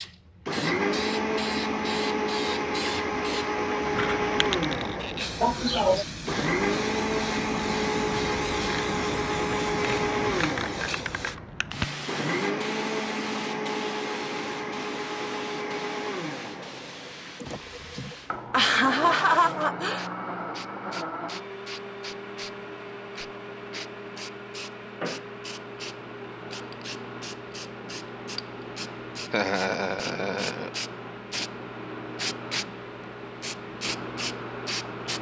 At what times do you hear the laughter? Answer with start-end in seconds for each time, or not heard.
5.4-6.0, 17.4-20.1, 29.3-30.7.